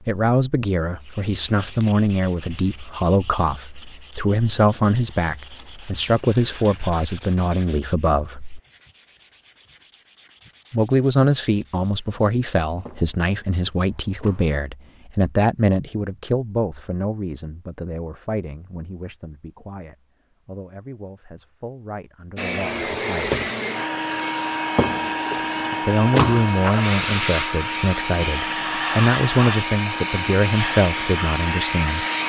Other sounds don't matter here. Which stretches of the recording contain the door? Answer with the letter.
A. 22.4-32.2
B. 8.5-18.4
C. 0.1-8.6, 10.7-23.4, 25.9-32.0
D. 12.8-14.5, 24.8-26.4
D.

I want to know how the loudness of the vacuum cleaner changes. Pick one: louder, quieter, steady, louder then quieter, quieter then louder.
steady.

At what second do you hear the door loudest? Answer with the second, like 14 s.
26 s.